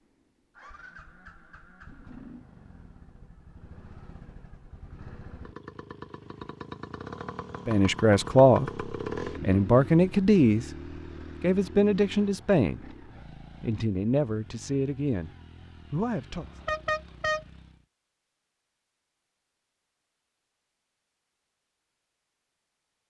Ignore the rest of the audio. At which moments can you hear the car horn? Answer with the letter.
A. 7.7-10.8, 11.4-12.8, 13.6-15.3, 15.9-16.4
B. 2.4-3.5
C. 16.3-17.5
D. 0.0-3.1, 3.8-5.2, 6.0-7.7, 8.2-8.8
C.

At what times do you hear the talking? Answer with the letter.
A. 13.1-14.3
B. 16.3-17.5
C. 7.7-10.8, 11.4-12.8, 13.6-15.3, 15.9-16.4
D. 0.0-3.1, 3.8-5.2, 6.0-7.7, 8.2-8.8
C.